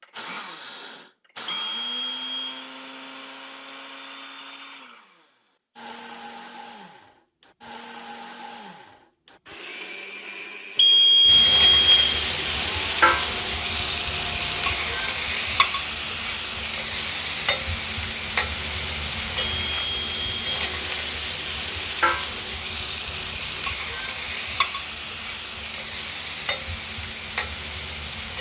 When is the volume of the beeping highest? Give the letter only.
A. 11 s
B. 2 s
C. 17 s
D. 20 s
A.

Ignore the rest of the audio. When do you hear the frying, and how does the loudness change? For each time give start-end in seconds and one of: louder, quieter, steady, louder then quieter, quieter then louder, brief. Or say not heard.
11.2-28.3 quieter.